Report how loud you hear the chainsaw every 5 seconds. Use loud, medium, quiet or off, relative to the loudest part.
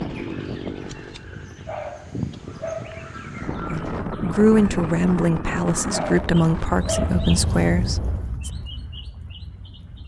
loud, off.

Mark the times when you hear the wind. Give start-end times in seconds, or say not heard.
0.0-8.3.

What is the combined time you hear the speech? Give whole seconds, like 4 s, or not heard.
5 s.